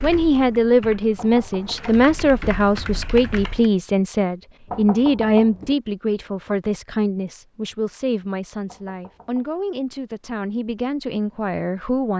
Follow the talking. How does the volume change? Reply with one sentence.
The volume of the talking goes down.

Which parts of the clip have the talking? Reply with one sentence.
The talking can be heard from 0.0 to 12.1 s.